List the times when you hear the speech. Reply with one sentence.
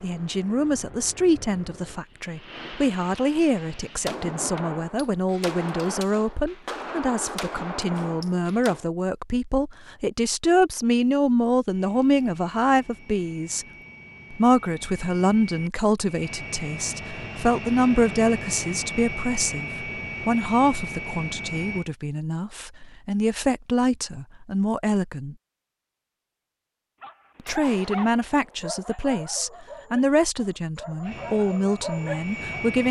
You can hear the speech from 0.0 to 13.7 s, from 14.3 to 25.4 s and from 27.4 to 32.8 s.